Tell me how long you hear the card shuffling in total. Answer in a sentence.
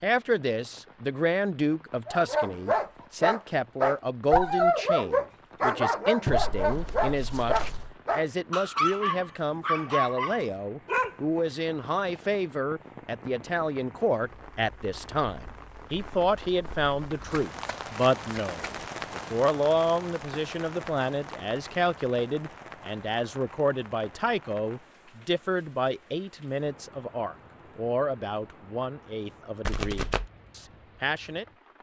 The card shuffling can be heard for 4 seconds in total.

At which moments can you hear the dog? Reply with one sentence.
You can hear the dog from 2.0 to 11.4 s.